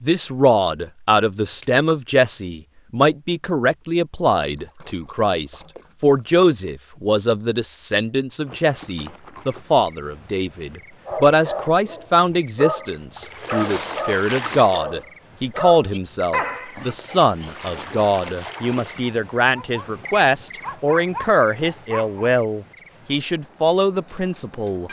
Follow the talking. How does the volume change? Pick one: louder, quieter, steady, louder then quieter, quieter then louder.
steady.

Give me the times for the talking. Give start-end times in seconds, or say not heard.
0.0-24.8.